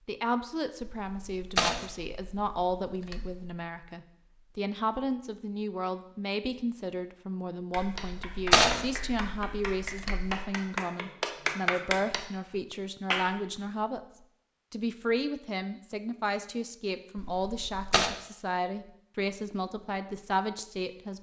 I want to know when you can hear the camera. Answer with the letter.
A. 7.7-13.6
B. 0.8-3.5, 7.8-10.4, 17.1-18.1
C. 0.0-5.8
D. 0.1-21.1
B.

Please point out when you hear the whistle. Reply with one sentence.
You can't hear the whistle here.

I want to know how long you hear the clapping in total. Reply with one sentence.
You can hear the clapping for 6 seconds altogether.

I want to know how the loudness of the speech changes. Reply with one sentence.
The volume of the speech stays about the same.